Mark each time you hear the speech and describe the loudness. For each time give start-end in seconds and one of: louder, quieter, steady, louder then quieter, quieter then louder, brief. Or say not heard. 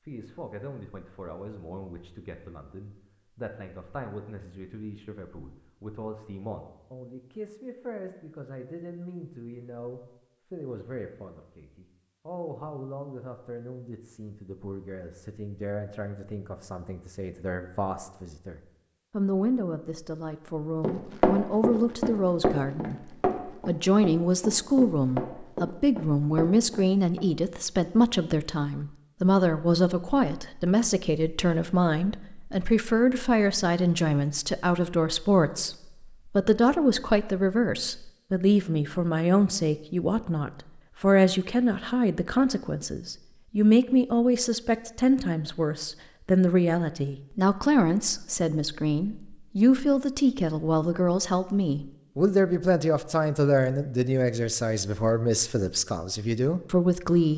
0.1-57.3 louder.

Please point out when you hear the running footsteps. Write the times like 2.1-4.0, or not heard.
20.8-27.2.